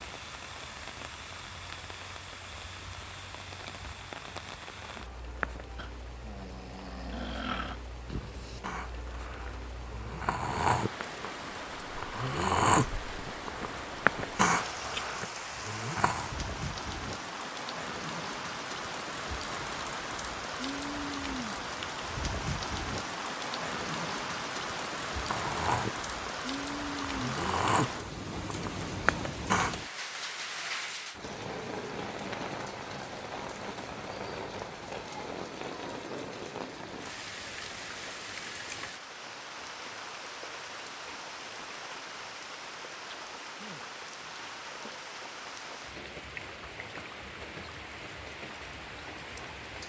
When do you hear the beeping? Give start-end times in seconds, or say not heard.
not heard.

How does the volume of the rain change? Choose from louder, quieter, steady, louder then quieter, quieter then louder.
louder then quieter.